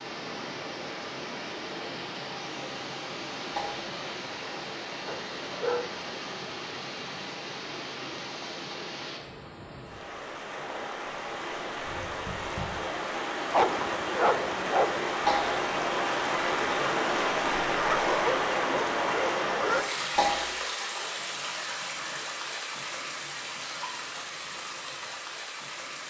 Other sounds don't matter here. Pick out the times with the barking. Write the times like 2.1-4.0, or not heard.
5.0-6.4, 13.5-15.0, 17.8-19.9.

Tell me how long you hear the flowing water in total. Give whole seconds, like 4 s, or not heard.
26 s.